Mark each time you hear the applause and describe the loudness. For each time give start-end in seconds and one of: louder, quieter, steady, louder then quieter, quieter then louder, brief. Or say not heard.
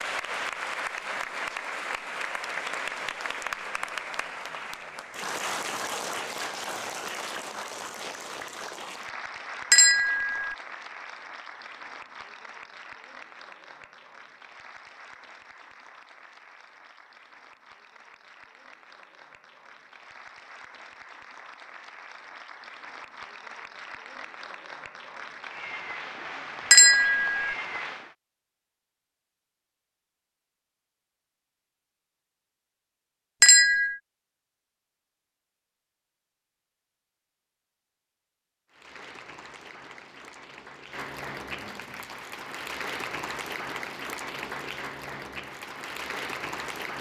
0.0-28.1 quieter then louder
38.7-46.9 louder.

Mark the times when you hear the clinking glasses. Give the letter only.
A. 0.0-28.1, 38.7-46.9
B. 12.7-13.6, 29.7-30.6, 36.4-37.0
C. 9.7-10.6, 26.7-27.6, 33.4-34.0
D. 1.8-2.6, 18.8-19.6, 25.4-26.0
C.